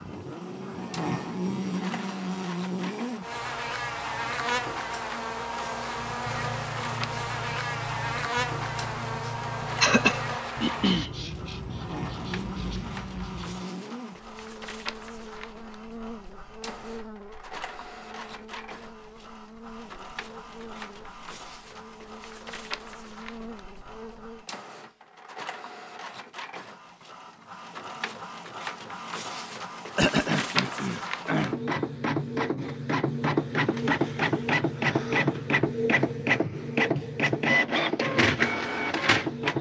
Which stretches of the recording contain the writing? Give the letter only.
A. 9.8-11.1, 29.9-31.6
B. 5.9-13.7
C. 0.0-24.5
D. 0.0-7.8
B.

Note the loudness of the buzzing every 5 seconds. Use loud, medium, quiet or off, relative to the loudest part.
loud, loud, medium, quiet, quiet, off, off, off.